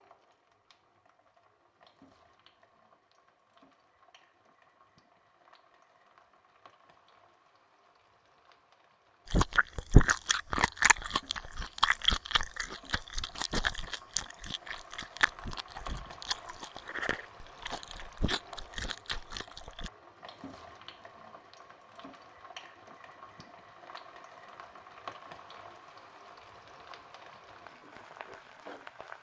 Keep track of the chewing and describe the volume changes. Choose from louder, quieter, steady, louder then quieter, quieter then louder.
quieter.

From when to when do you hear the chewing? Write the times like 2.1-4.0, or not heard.
9.3-19.9.